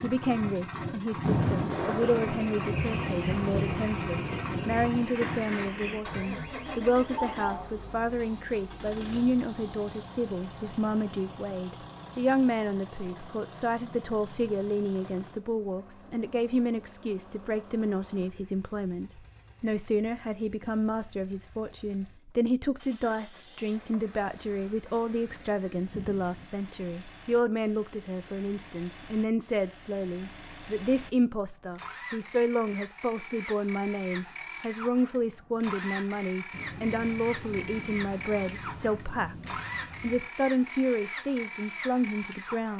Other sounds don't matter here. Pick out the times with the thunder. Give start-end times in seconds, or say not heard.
1.2-4.9, 25.2-26.5, 36.5-40.3.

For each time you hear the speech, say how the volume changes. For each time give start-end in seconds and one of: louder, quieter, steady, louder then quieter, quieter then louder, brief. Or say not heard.
0.0-39.4 steady
40.0-42.7 brief.